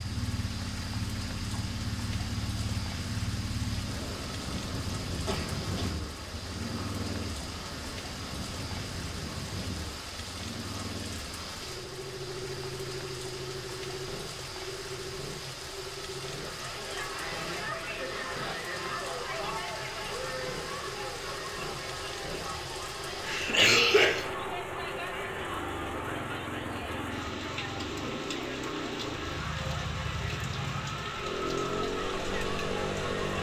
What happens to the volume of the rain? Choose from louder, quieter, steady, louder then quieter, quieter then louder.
steady.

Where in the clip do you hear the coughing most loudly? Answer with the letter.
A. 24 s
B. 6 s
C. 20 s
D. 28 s
A.